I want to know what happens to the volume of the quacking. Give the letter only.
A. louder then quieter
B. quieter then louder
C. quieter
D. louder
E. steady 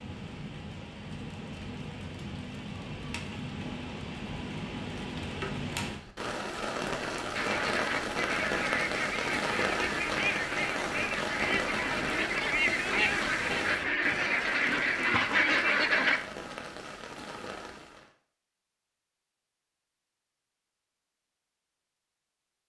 D.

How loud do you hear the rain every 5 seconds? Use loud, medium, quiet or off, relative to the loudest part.
medium, loud, loud, medium, off.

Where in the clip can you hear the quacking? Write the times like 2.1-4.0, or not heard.
7.3-16.2.